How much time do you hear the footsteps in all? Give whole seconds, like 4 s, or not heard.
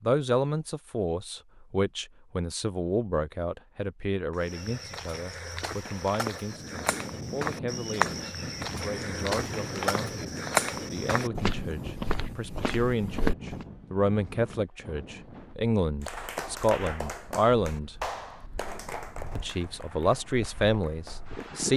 9 s.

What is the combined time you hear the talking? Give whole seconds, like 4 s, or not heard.
20 s.